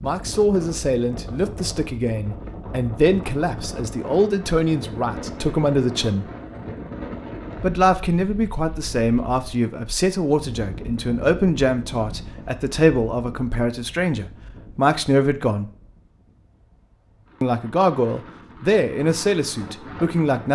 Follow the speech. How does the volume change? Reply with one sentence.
The loudness of the speech stays about the same.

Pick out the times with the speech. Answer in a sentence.
The speech can be heard from 0.0 to 6.2 s, from 7.6 to 15.7 s and from 17.4 to 20.5 s.